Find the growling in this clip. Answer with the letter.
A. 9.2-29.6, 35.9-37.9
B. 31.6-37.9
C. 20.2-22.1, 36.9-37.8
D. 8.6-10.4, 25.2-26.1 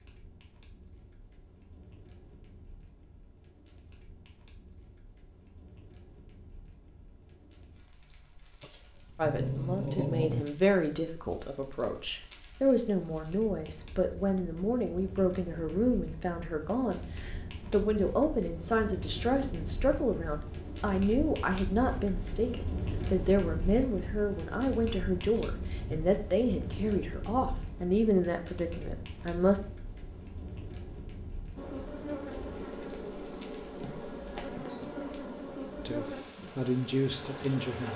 D.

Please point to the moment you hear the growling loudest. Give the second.
10 s.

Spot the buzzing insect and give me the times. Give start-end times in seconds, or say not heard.
31.6-37.9.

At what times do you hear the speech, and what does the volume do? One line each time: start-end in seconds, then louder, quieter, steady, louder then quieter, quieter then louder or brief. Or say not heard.
9.2-29.6 steady
35.9-37.9 brief.